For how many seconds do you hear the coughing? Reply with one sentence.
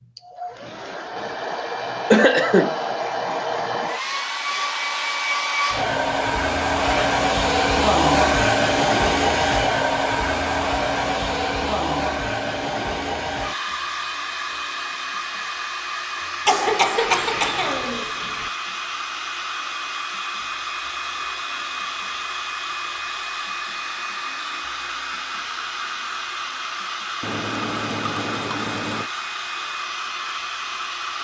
You can hear the coughing for 2 seconds altogether.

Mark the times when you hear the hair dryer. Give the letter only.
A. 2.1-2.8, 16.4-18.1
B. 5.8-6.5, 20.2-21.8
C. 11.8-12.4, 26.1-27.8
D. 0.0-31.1
D.